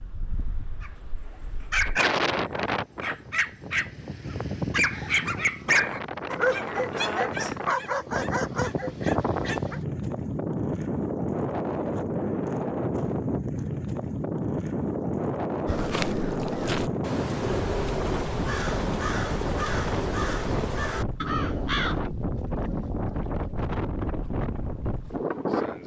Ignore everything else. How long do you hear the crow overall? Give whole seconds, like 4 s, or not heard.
6 s.